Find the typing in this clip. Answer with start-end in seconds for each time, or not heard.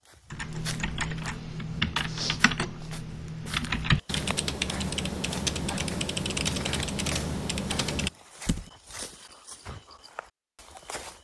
0.3-8.7.